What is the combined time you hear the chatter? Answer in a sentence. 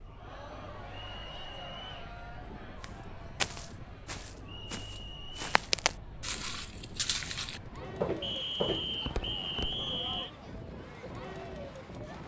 The chatter can be heard for 12 seconds in total.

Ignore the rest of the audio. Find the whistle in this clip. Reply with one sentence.
You can hear the whistle from 1.1 to 1.9 s, from 4.5 to 5.4 s and from 8.2 to 10.3 s.